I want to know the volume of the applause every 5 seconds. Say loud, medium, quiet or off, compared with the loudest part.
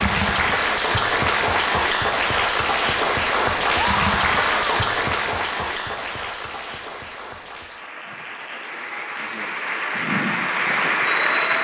loud, medium, loud.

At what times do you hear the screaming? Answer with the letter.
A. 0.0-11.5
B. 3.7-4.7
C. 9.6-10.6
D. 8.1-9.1
B.